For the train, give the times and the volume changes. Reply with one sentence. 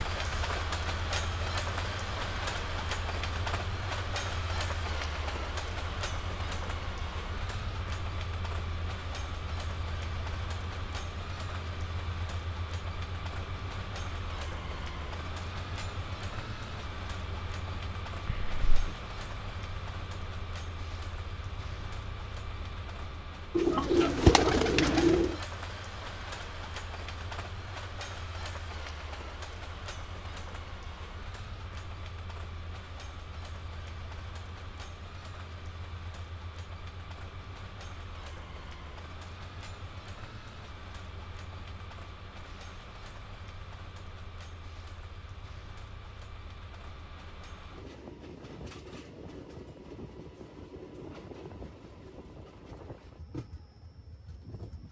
You can hear the train from 0.0 to 54.8 s, getting quieter.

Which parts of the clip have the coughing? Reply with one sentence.
The coughing can be heard from 18.2 to 18.9 s.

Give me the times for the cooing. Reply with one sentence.
You can hear the cooing from 23.6 to 25.4 s.